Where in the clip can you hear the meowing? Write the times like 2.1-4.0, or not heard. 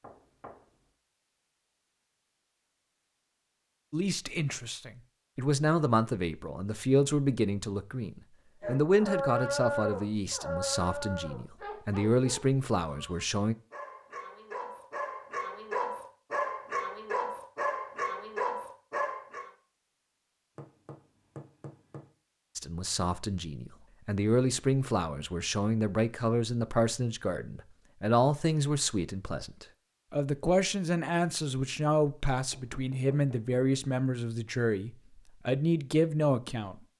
not heard.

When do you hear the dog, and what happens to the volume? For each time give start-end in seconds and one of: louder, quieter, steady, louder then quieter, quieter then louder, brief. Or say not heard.
8.6-19.5 quieter then louder.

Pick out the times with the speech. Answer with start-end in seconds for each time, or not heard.
3.9-13.6, 22.6-36.8.